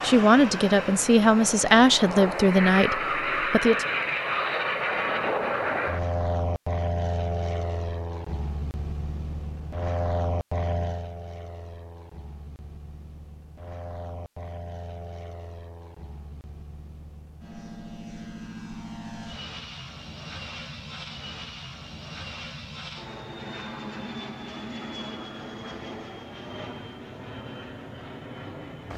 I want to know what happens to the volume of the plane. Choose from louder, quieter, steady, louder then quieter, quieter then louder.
quieter then louder.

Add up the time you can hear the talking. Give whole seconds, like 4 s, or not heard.
4 s.